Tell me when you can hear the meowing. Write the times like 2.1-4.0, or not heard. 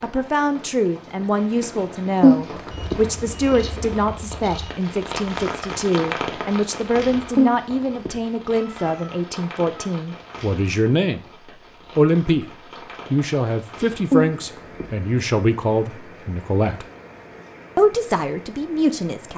2.2-3.0, 7.3-9.1, 14.1-14.8.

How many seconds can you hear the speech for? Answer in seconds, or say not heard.
17 s.